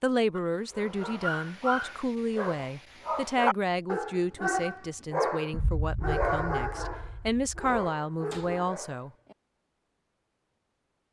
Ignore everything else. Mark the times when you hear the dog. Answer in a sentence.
The dog can be heard from 0.3 to 9.3 s.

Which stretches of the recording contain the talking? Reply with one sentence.
The talking can be heard from 0.0 to 9.1 s.